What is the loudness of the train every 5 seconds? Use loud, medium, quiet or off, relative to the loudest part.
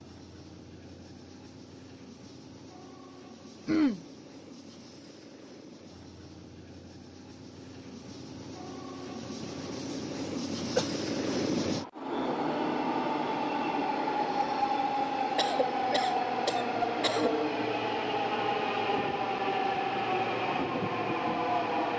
quiet, quiet, loud, loud, loud.